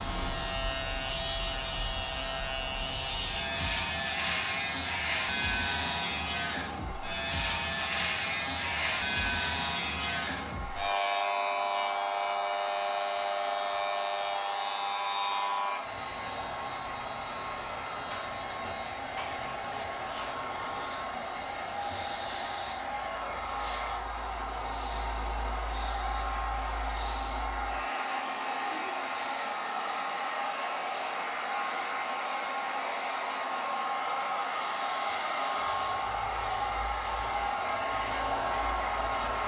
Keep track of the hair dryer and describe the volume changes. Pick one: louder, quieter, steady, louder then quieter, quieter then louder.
louder.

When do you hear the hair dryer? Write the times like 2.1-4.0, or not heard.
0.2-39.4.